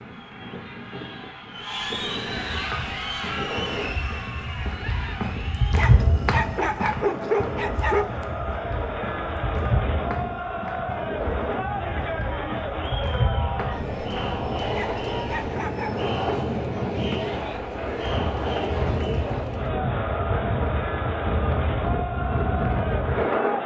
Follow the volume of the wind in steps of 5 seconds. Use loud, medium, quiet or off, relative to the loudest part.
medium, medium, medium, loud, loud.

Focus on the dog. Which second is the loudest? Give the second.
7 s.